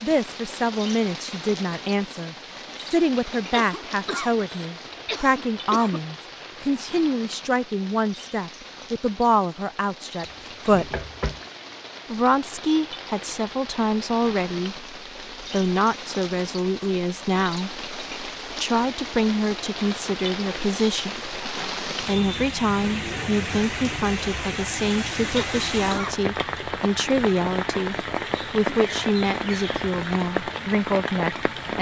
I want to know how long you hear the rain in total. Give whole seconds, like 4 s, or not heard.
32 s.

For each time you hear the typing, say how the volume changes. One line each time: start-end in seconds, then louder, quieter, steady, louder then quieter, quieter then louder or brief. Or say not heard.
not heard.